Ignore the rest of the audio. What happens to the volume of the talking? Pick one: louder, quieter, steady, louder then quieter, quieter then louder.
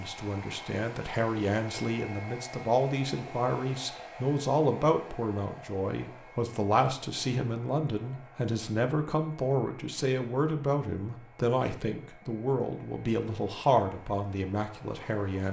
steady.